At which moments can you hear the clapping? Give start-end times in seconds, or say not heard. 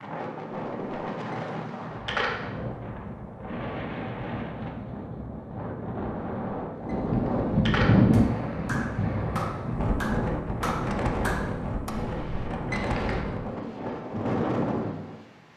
8.1-11.9.